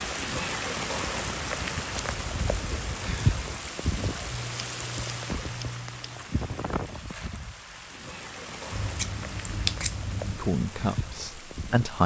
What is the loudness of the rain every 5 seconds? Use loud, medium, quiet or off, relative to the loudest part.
loud, medium, medium.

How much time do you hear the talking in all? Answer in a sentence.
You can hear the talking for 2 seconds altogether.